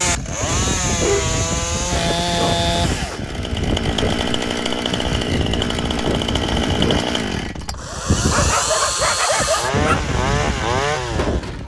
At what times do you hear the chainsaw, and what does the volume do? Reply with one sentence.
The chainsaw can be heard from 0.0 to 11.6 s, at a steady volume.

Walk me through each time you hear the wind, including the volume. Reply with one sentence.
The wind can be heard from 0.0 to 11.6 s, at a steady volume.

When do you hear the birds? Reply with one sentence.
You can't hear the birds here.